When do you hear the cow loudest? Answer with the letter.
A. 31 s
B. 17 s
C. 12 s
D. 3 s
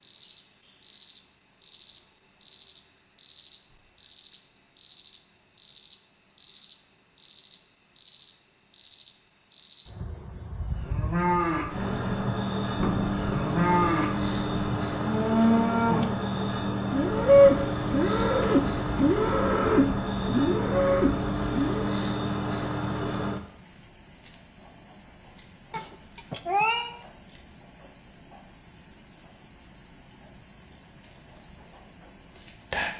B.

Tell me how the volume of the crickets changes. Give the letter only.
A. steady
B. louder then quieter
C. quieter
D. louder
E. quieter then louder
C.